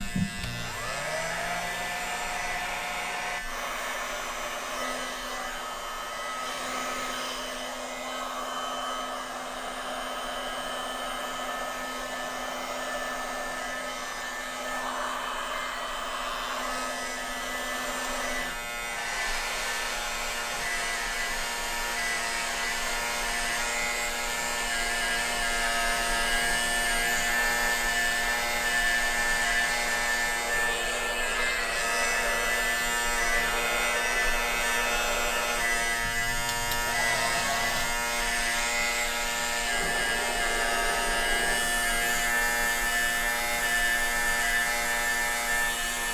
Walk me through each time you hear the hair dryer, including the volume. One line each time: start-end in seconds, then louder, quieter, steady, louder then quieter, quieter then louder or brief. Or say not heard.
0.0-46.0 steady.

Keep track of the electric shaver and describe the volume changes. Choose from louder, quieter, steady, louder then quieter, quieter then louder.
louder.